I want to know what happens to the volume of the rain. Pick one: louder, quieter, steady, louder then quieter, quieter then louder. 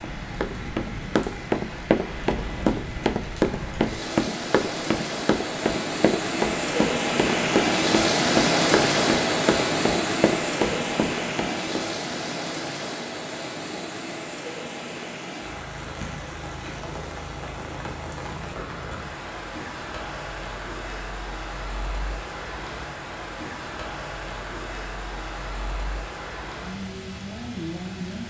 louder then quieter.